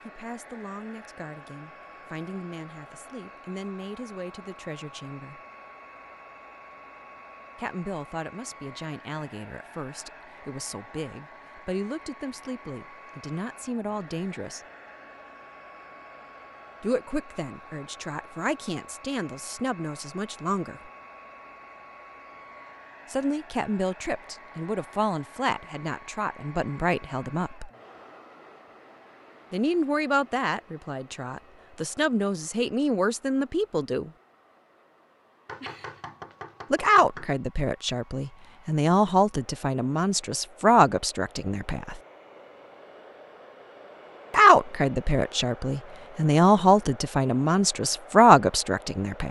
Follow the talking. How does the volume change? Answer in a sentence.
The volume of the talking goes up.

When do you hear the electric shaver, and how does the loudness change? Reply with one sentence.
The electric shaver can't be heard in this clip.